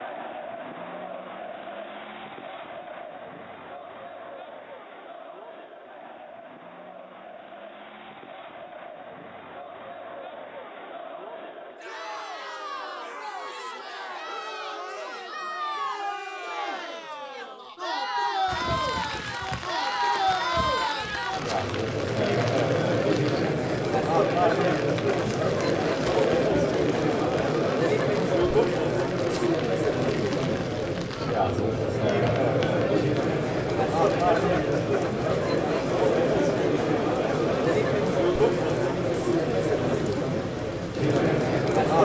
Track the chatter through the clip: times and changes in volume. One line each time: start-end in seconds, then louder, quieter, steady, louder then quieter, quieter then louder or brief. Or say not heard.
0.0-42.0 louder.